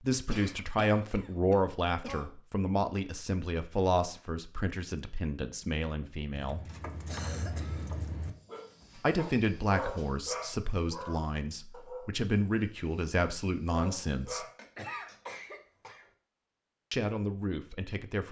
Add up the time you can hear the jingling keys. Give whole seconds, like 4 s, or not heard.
2 s.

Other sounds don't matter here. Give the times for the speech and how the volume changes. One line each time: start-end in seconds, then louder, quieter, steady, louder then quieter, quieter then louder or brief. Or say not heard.
0.0-6.6 quieter
8.9-14.4 quieter then louder
16.9-18.2 brief.